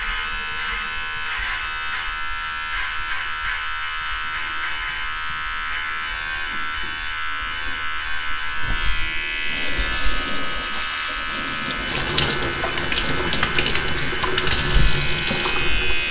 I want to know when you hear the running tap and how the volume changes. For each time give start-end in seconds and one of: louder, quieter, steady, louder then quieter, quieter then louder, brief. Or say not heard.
0.0-16.0 louder.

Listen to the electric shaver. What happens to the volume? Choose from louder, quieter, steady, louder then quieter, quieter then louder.
steady.